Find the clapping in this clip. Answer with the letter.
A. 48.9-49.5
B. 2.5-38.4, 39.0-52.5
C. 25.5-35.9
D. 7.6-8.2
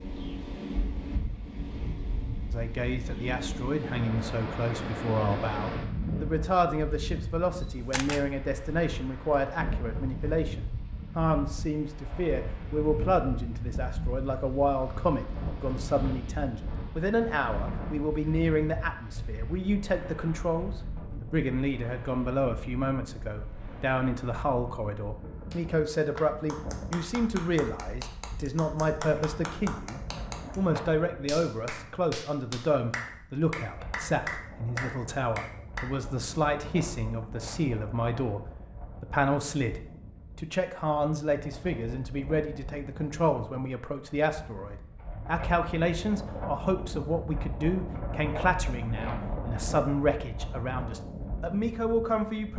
C.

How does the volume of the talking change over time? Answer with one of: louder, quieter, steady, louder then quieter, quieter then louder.
steady.